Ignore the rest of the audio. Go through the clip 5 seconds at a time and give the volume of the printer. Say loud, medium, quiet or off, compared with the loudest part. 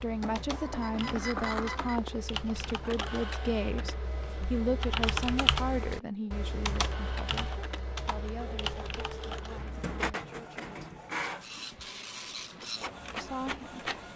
loud, medium, loud.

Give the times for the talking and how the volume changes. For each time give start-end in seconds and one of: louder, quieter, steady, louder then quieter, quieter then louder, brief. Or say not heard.
0.0-10.8 quieter
13.2-13.9 brief.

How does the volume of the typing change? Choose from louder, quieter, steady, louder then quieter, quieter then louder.
louder then quieter.